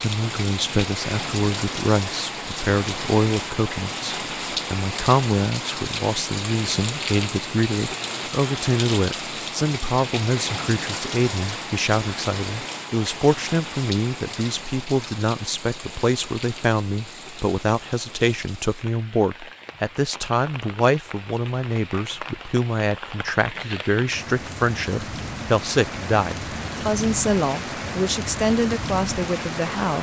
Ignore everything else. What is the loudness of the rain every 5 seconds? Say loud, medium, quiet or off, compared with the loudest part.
loud, loud, loud, medium, medium, loud.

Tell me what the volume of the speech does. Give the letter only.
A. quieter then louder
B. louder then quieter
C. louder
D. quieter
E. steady
E.